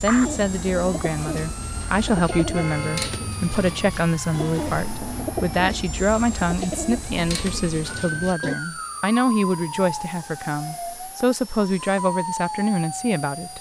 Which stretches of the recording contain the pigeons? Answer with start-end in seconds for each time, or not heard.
0.1-8.6.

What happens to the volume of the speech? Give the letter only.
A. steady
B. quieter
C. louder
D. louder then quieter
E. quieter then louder
A.